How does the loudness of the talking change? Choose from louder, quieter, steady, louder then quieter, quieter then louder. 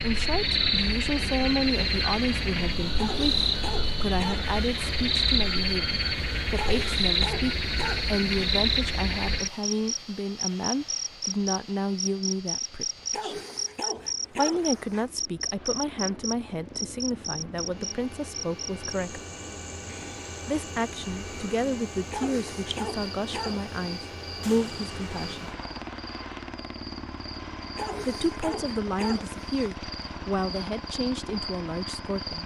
steady.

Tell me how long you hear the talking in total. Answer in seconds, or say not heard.
28 s.